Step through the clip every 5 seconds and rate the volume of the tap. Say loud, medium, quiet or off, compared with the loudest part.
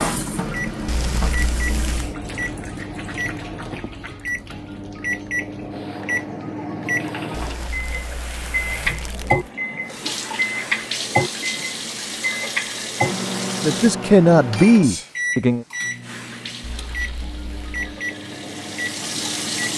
loud, medium, loud, loud.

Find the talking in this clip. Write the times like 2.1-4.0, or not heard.
13.6-15.7.